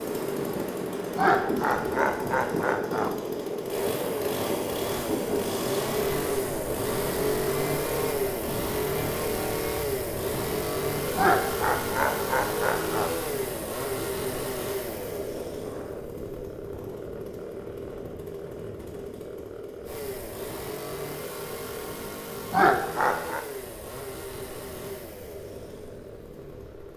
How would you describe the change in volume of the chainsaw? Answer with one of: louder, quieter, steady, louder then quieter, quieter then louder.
quieter.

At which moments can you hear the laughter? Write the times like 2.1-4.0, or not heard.
1.1-3.1, 11.2-13.1, 22.5-23.4.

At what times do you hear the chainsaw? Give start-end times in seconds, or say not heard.
0.0-26.9.